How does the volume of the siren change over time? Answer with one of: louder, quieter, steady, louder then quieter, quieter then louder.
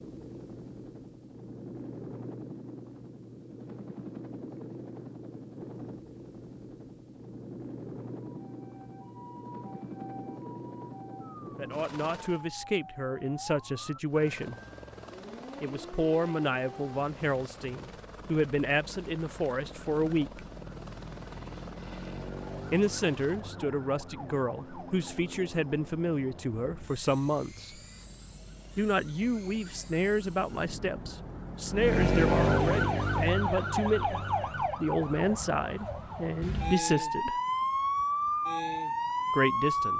louder.